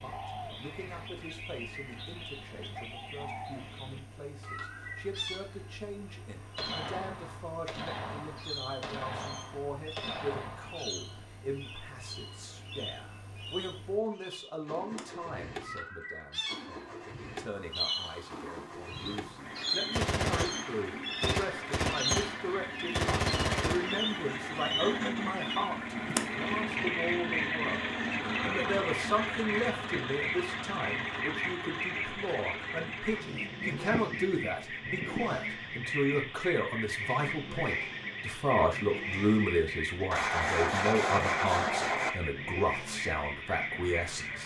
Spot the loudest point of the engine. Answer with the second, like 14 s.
27 s.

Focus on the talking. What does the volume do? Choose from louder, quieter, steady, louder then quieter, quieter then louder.
louder.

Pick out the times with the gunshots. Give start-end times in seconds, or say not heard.
6.5-10.8, 19.9-24.1, 40.1-42.1.